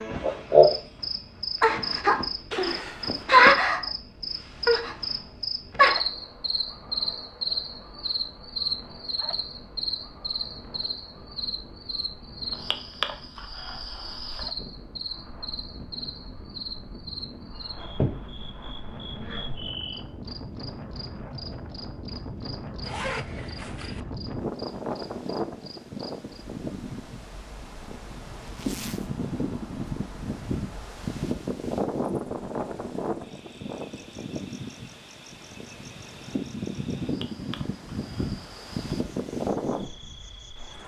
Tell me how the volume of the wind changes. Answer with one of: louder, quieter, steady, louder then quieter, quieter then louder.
louder.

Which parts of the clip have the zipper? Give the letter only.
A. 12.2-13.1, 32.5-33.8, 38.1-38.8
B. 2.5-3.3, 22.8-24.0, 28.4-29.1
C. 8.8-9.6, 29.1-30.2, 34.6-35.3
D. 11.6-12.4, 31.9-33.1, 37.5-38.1
B.